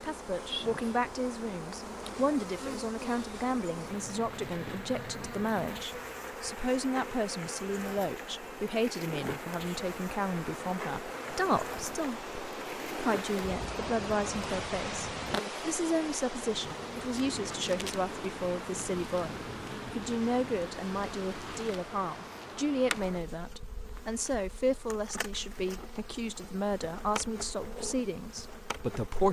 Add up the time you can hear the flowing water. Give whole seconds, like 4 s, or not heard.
23 s.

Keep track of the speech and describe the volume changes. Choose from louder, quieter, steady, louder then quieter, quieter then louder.
steady.